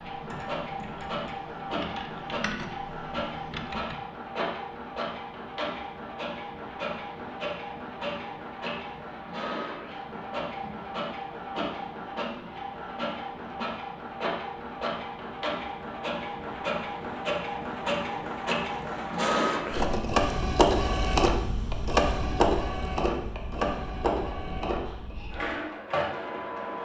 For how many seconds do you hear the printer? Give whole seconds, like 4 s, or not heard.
27 s.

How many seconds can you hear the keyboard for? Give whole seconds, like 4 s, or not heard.
4 s.